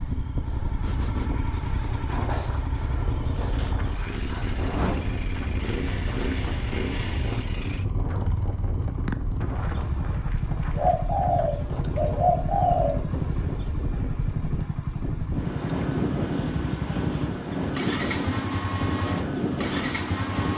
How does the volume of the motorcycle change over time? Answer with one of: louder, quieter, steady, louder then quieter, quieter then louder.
steady.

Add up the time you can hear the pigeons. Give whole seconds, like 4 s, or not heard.
5 s.